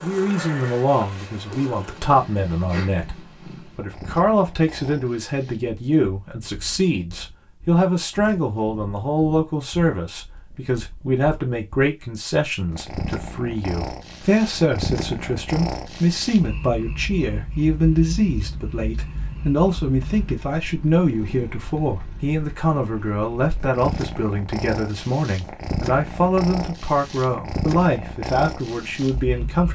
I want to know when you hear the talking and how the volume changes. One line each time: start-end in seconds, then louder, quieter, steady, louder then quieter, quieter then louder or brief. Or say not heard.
0.0-29.7 steady.